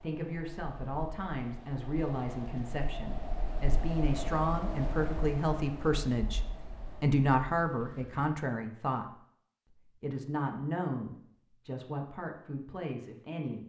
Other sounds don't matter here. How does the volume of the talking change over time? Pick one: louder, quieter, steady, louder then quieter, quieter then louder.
louder then quieter.